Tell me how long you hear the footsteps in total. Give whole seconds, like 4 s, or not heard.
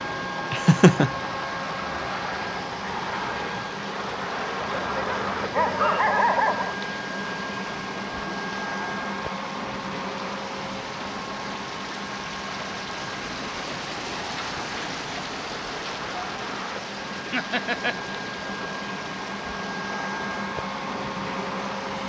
not heard.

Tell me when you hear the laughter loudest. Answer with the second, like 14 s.
1 s.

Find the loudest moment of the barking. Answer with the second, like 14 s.
6 s.